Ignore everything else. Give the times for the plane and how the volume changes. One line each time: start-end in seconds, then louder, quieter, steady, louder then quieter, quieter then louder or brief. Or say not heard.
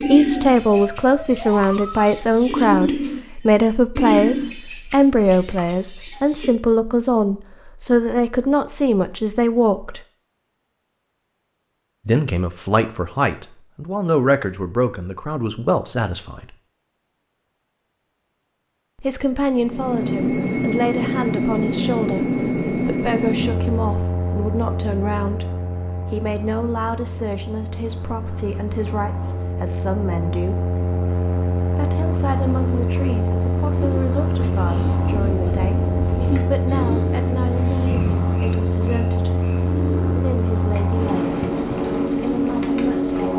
19.6-43.3 quieter then louder.